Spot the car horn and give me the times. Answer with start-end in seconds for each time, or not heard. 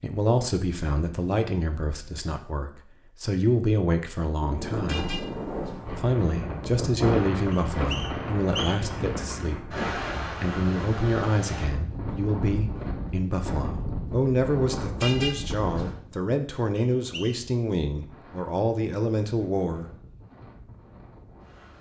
4.8-5.8, 15.0-15.8.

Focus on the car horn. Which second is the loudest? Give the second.
15 s.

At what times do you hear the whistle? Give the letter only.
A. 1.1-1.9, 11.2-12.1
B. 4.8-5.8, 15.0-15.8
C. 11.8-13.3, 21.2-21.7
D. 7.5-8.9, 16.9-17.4
D.